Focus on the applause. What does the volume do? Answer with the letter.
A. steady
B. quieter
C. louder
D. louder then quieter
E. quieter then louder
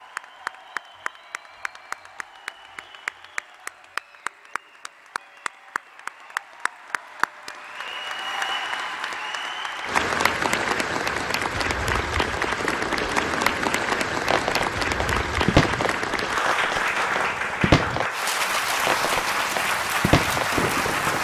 C.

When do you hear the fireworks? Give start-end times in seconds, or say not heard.
12.6-21.1.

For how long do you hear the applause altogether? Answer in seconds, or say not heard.
21 s.